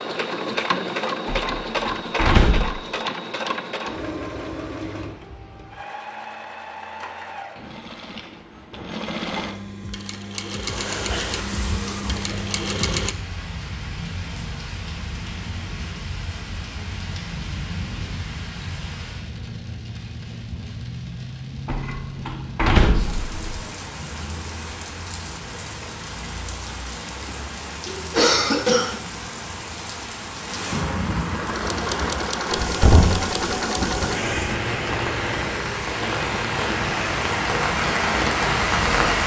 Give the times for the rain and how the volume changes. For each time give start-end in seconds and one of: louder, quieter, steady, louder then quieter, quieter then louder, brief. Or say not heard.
10.6-39.2 louder.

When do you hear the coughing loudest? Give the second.
28 s.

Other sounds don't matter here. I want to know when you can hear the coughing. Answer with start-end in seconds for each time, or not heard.
11.1-12.4, 27.9-29.0.